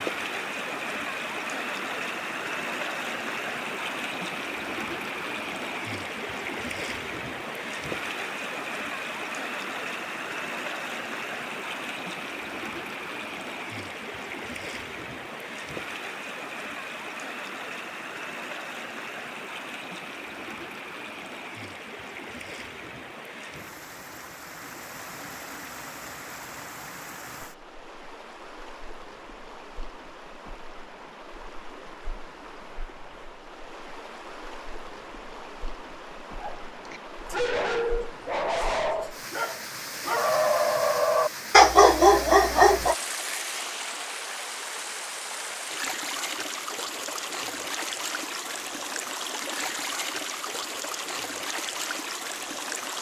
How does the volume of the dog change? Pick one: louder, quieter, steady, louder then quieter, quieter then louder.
louder.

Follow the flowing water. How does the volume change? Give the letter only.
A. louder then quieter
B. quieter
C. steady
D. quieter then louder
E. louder
D.